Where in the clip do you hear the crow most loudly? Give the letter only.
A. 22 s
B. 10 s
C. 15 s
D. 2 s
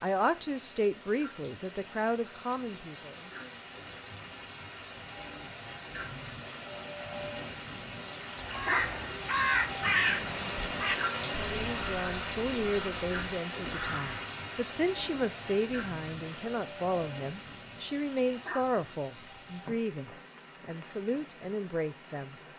B.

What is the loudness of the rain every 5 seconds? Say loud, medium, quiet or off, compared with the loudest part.
medium, loud, loud, medium, quiet.